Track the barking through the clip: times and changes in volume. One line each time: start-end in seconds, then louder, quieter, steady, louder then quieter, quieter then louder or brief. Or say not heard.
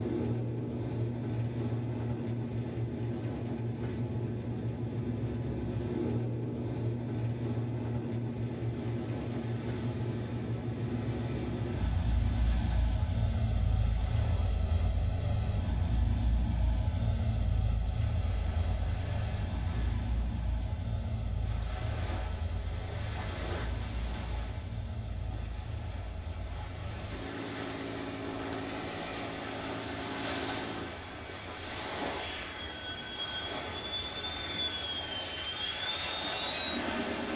not heard.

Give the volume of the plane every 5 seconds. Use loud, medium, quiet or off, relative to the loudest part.
loud, loud, loud, loud, medium, medium, medium, loud.